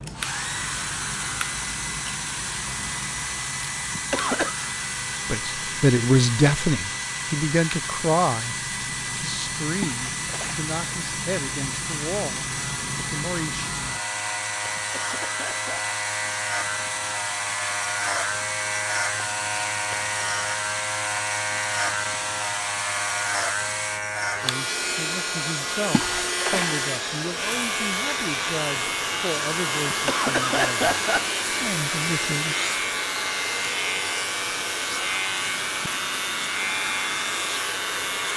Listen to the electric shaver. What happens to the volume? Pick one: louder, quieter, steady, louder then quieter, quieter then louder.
louder.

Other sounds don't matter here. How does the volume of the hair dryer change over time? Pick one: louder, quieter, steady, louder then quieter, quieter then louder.
steady.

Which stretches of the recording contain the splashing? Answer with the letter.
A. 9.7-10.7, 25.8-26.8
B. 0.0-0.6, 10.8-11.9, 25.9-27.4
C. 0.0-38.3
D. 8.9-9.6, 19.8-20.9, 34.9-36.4
A.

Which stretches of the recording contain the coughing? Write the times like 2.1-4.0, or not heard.
4.0-4.5, 14.8-15.8, 29.9-31.4.